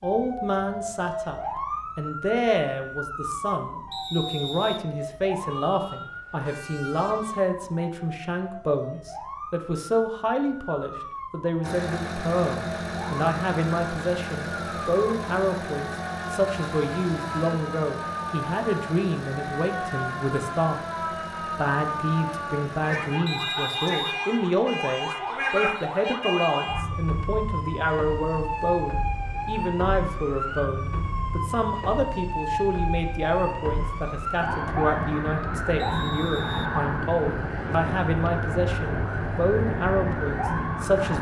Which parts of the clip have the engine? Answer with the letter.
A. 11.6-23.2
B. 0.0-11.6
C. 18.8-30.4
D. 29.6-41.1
A.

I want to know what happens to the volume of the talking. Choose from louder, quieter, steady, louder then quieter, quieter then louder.
steady.